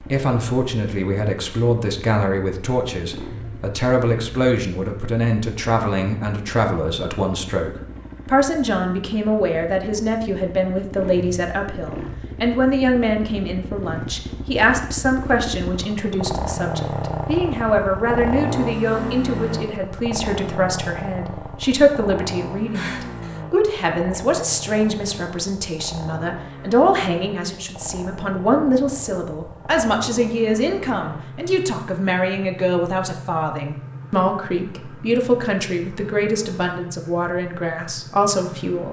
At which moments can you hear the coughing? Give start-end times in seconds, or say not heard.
22.7-23.4.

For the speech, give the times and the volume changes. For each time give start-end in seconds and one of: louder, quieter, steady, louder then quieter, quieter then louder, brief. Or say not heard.
0.0-38.8 steady.